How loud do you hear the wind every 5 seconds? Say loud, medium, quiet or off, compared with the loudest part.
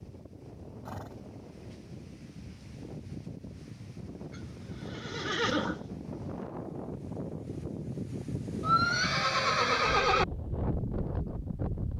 medium, loud, loud.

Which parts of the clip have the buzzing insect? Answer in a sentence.
You can't hear the buzzing insect here.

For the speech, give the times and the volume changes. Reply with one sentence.
You can't hear the speech here.